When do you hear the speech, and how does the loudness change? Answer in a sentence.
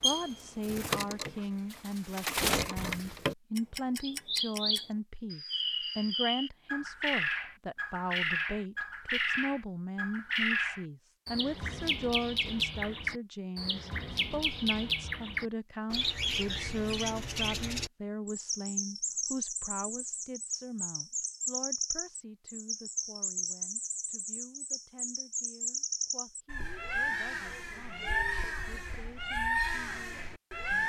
You can hear the speech from 0.0 to 30.8 s, getting quieter.